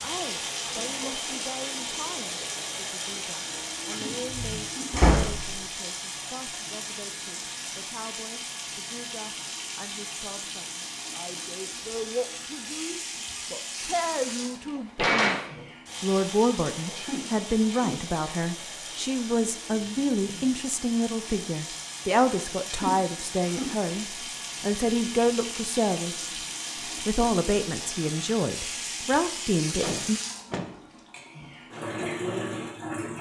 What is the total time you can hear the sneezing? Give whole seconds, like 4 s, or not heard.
3 s.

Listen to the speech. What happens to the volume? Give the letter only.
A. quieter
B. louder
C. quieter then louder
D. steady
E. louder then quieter
B.